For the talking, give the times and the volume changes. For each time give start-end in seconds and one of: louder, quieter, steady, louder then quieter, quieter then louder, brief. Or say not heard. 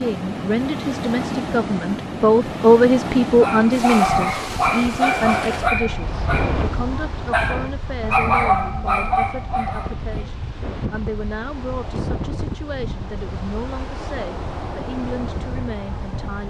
0.0-16.4 quieter.